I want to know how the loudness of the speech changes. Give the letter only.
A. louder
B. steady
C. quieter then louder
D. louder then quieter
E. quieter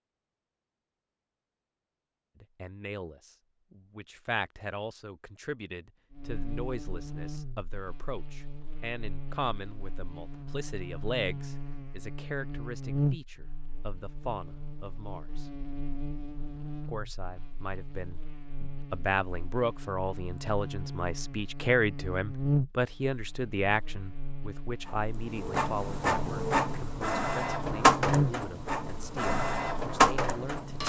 D.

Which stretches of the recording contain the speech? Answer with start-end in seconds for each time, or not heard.
2.4-15.4, 16.9-30.8.